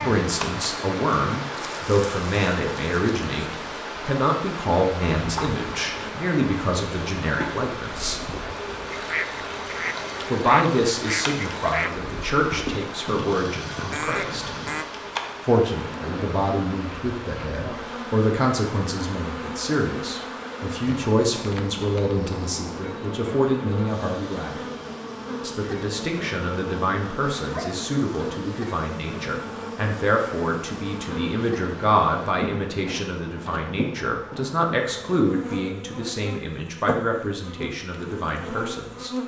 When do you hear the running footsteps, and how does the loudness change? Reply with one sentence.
You can't hear the running footsteps here.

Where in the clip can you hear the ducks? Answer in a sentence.
You can hear the ducks from 8.0 to 14.8 s.